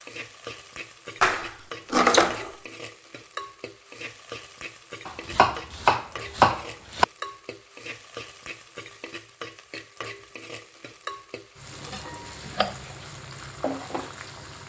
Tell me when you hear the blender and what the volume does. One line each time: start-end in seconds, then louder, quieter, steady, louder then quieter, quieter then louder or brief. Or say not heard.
not heard.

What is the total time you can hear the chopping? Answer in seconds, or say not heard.
4 s.